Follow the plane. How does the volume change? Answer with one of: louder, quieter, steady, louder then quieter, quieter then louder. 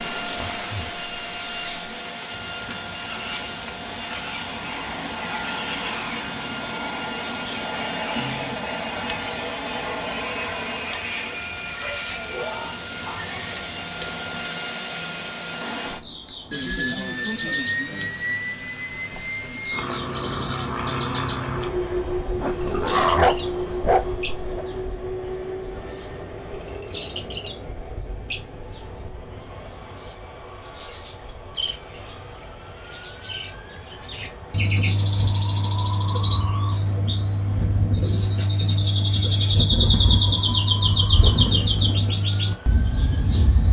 quieter.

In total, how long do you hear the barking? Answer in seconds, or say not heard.
4 s.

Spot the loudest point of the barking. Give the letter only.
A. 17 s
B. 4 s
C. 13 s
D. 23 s
D.